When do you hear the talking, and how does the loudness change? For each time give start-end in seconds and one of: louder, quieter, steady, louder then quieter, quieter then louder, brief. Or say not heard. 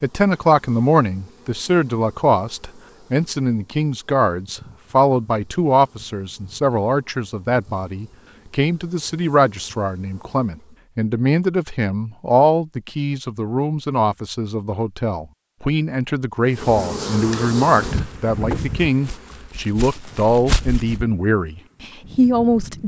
0.0-22.8 steady.